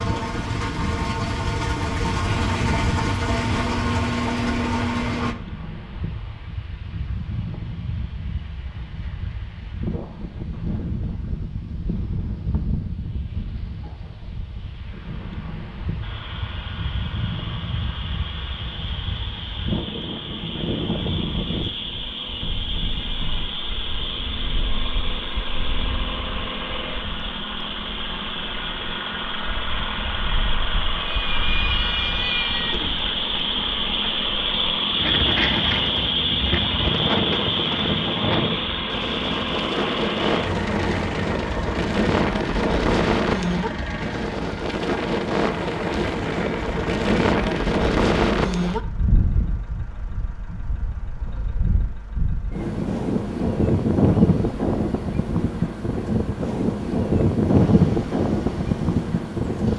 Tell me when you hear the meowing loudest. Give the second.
32 s.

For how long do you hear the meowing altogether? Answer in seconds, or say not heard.
2 s.